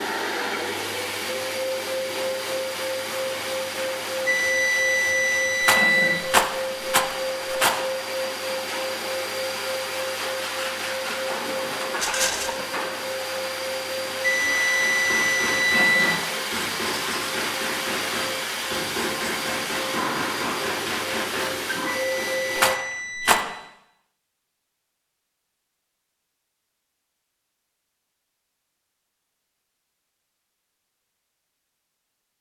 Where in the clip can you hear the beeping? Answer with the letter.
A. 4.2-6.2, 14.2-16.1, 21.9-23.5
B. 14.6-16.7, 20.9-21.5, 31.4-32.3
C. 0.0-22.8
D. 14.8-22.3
A.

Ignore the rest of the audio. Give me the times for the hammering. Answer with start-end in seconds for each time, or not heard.
14.8-22.3.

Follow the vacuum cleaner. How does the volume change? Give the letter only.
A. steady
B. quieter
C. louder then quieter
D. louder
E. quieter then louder
A.